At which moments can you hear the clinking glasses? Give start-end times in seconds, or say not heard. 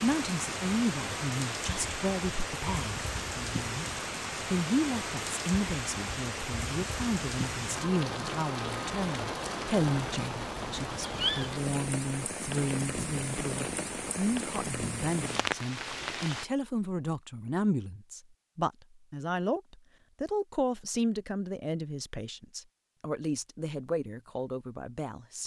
not heard.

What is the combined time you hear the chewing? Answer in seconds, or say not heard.
not heard.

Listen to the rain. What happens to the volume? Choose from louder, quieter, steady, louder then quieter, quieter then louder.
steady.